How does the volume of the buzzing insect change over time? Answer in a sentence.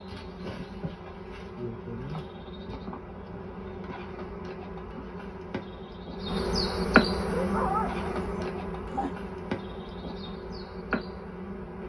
The loudness of the buzzing insect goes up, then down.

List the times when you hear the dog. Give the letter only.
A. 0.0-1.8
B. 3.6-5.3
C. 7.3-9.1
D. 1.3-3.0
C.